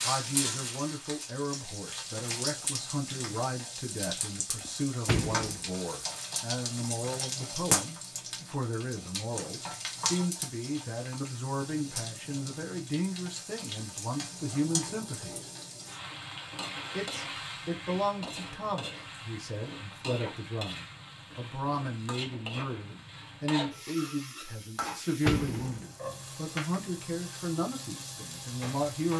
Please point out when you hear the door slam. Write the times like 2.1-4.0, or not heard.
4.7-5.7, 24.8-25.9.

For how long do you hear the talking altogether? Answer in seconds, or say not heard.
28 s.